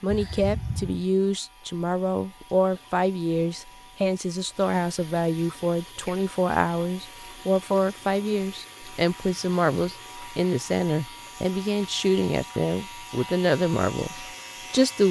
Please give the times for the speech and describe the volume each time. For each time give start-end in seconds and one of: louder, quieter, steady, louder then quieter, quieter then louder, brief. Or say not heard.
0.0-15.0 steady.